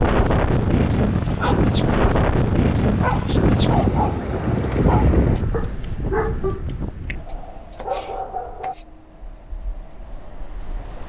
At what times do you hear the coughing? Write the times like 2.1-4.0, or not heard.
not heard.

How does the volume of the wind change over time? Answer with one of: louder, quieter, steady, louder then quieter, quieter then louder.
quieter.